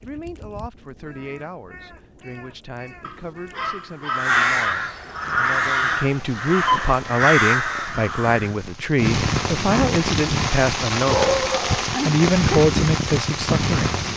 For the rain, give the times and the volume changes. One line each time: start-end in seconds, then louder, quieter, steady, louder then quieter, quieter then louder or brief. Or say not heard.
5.2-14.1 louder.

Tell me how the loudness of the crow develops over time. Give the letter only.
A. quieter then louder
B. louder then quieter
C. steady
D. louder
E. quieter
D.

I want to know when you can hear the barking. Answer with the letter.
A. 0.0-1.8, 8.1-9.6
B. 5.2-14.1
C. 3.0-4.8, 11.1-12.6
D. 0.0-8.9
C.